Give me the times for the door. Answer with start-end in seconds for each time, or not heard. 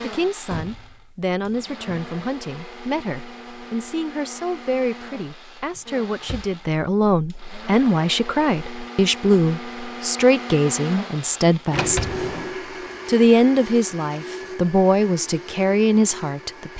0.5-2.1, 5.8-7.0, 11.7-12.6.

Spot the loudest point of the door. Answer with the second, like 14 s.
12 s.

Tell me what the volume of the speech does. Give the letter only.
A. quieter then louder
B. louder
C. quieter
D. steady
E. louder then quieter
B.